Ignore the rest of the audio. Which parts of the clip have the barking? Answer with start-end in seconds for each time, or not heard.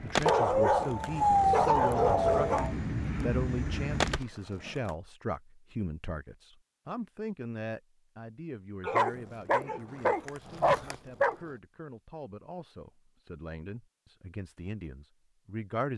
0.2-2.8, 8.8-11.3.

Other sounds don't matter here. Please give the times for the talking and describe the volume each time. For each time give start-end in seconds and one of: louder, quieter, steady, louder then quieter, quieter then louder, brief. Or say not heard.
0.0-15.9 quieter.